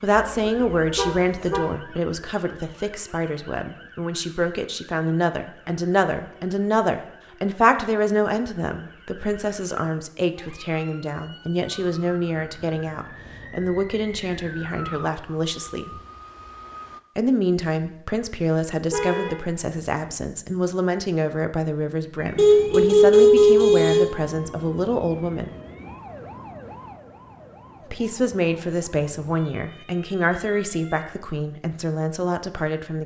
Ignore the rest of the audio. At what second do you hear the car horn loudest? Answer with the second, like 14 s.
23 s.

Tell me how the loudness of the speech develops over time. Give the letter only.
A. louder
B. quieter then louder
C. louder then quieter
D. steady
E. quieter
D.